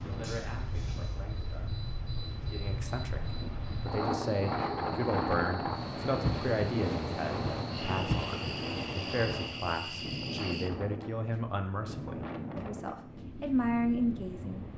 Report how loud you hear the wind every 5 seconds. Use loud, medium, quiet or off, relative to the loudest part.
loud, loud, medium.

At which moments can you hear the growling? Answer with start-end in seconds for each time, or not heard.
not heard.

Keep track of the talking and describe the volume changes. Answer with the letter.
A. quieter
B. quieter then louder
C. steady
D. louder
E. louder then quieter
D.